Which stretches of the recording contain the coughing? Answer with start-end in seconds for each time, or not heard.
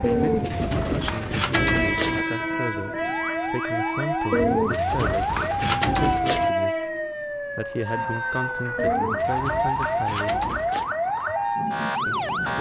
not heard.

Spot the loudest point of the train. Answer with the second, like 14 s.
2 s.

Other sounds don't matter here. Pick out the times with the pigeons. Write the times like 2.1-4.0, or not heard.
0.0-2.2, 4.3-6.5, 8.8-10.9.